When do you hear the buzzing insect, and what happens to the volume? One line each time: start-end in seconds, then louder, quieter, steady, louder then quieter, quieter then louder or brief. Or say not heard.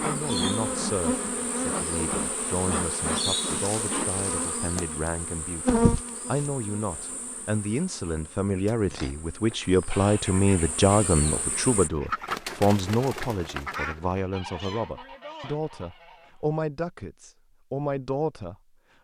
0.0-11.9 quieter then louder.